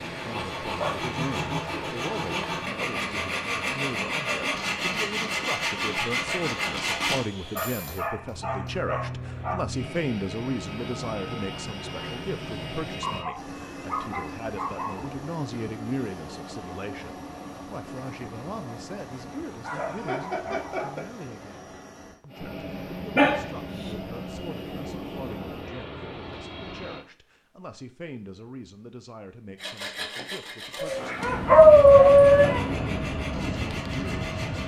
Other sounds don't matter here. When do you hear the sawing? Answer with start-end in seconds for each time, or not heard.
0.0-8.1, 29.6-34.6.